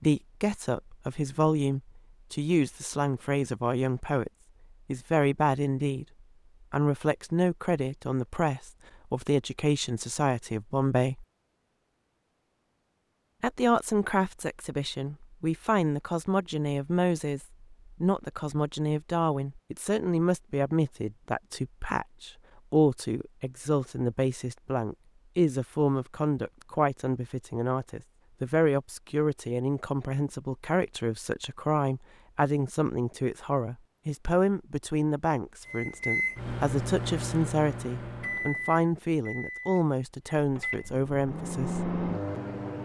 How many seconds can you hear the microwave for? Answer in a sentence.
The microwave can be heard for 7 seconds in total.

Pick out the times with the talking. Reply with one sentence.
You can hear the talking from 0.0 to 6.0 s, from 6.7 to 11.2 s and from 13.4 to 41.9 s.